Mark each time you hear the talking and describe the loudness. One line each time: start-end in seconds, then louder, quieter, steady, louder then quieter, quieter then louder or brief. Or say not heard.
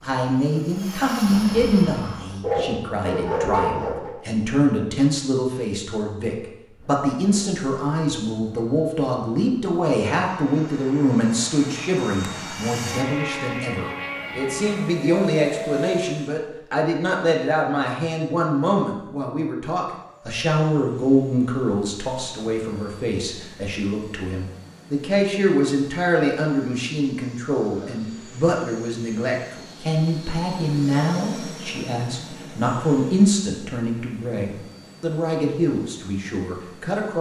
0.0-37.1 steady.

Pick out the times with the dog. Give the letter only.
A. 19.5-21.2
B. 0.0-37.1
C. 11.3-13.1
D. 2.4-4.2
D.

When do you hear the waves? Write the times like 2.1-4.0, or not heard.
not heard.